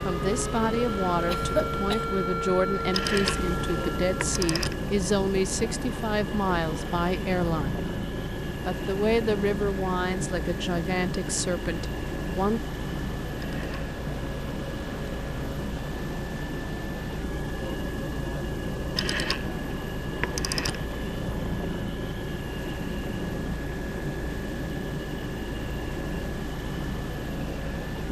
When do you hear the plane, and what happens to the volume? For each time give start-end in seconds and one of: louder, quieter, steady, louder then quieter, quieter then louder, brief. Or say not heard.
0.0-28.0 steady.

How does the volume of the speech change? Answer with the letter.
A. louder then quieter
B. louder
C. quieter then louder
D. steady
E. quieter
D.